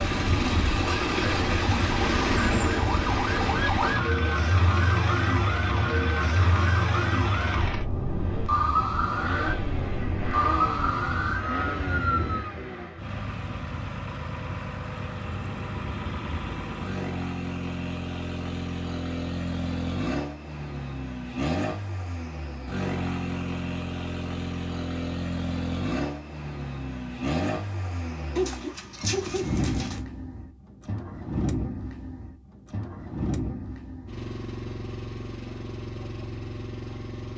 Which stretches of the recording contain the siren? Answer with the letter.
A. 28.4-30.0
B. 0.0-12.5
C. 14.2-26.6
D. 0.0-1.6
B.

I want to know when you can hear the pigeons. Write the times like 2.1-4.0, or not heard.
28.4-30.0.